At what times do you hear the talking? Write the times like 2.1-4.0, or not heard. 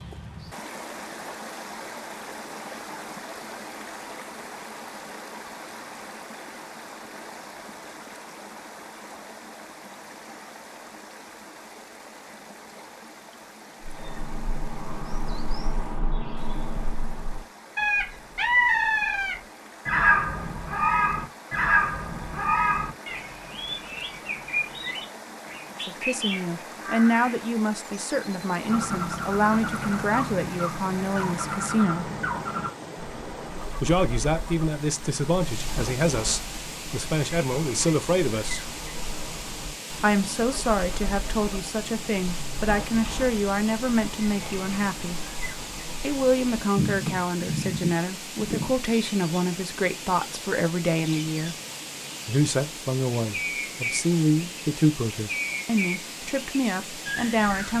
25.9-32.1, 33.8-38.8, 40.0-45.2, 46.0-51.5, 52.2-57.7.